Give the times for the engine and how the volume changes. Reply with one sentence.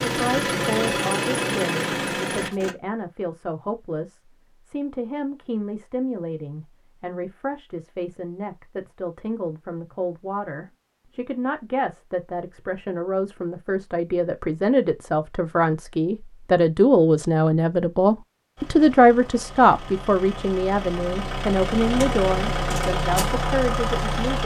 You can hear the engine briefly from 0.0 to 2.8 s; and from 18.6 to 24.4 s, getting louder.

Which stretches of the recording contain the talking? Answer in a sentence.
The talking can be heard from 0.0 to 24.4 s.